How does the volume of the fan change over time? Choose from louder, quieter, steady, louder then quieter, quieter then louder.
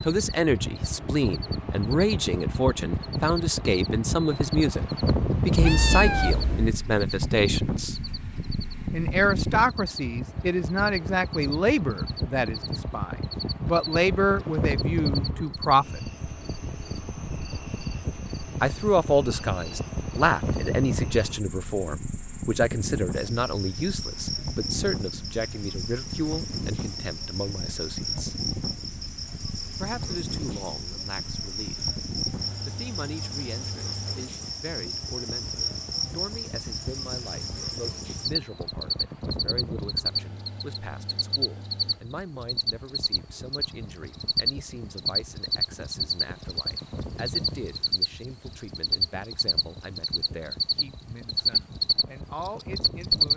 quieter.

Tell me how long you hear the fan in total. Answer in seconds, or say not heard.
53 s.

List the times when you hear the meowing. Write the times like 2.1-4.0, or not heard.
5.5-6.8.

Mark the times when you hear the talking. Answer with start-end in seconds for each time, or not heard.
0.0-8.0, 8.9-16.0, 18.6-28.4, 29.8-31.9, 32.6-53.3.